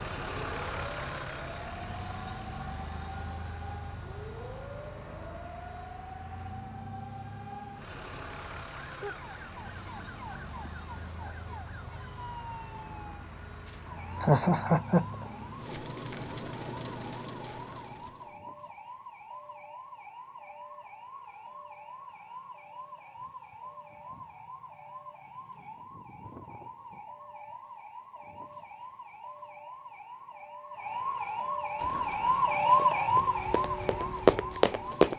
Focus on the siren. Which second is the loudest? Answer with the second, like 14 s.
33 s.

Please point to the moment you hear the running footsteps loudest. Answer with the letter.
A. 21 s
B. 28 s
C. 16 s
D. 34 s
D.